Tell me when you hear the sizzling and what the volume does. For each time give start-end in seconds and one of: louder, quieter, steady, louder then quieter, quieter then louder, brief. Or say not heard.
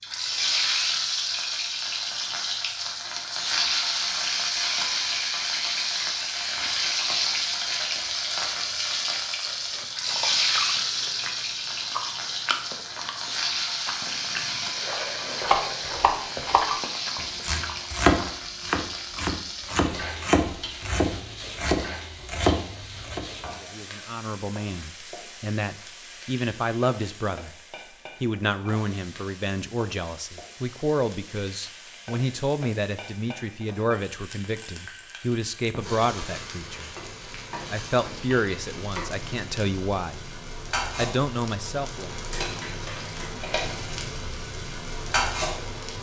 0.0-45.9 quieter then louder.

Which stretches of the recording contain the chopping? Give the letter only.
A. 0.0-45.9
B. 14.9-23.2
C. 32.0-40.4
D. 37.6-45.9
B.